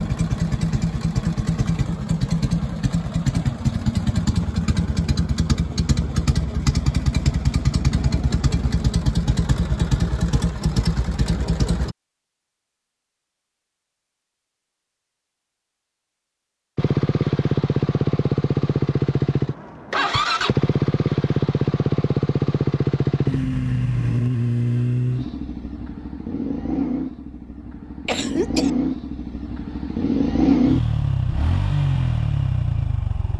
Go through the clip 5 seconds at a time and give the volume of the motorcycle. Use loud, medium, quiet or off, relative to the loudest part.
loud, loud, loud, loud, loud, medium, loud.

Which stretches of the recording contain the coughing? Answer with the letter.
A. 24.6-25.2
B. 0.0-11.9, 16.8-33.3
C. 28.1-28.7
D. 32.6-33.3
C.